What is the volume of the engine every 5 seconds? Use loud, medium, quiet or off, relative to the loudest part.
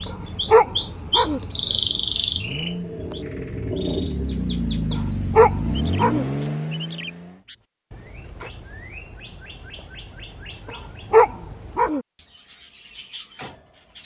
loud, loud, off.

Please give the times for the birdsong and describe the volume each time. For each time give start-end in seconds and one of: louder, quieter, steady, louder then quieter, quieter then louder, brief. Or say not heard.
0.0-14.0 quieter.